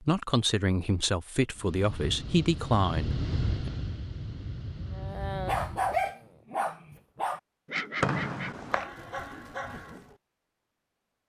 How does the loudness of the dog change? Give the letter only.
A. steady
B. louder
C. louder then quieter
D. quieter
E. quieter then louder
D.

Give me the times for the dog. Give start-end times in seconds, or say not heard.
4.9-10.2.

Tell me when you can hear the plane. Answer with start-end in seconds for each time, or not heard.
1.6-6.1.